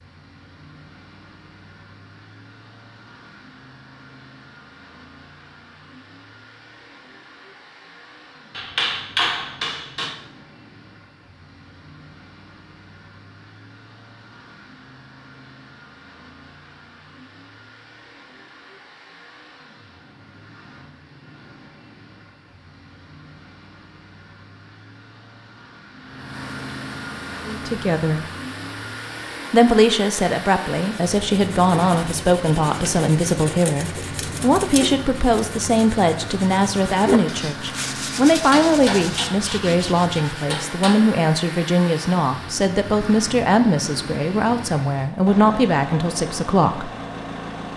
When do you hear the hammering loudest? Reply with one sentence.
The loudest moment of the hammering is at 9 seconds.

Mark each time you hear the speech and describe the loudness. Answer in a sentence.
You can hear the speech briefly from 27.4 to 28.3 s; and from 29.5 to 46.9 s, at a steady volume.